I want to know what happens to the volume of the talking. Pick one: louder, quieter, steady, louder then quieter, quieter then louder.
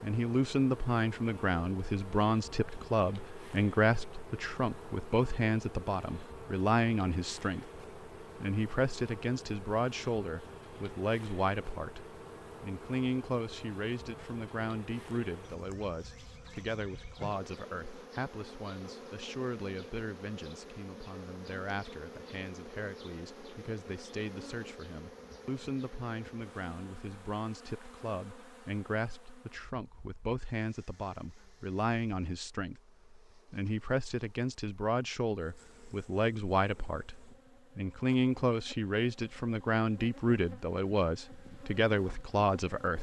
quieter then louder.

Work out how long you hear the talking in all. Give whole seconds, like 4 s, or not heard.
43 s.